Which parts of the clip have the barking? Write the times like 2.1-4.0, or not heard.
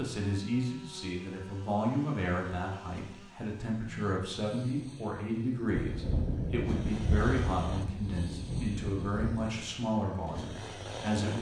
not heard.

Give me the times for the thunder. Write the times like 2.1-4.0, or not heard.
5.8-9.4.